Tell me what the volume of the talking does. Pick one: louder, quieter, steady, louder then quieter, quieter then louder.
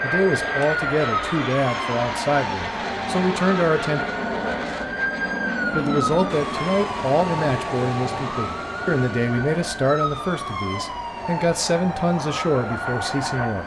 steady.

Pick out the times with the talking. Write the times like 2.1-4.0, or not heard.
0.0-4.0, 5.8-13.6.